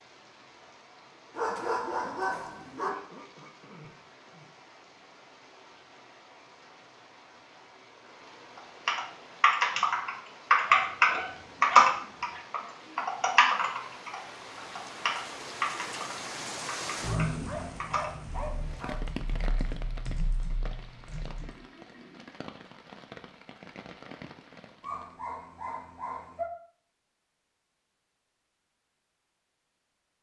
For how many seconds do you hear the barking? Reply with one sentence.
The barking can be heard for 7 seconds in total.